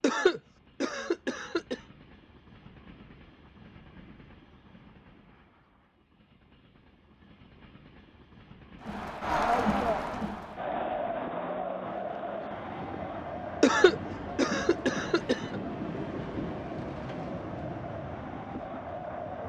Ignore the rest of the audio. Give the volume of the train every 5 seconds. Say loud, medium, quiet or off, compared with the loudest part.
quiet, quiet, loud, loud.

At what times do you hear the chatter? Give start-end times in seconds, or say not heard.
8.8-19.4.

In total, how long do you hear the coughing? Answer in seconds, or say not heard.
4 s.